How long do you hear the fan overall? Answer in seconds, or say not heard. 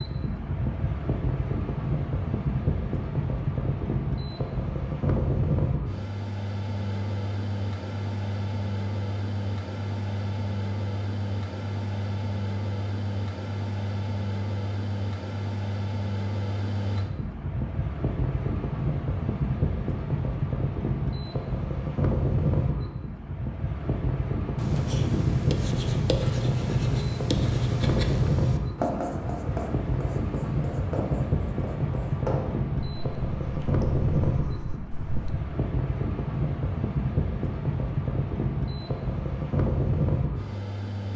41 s.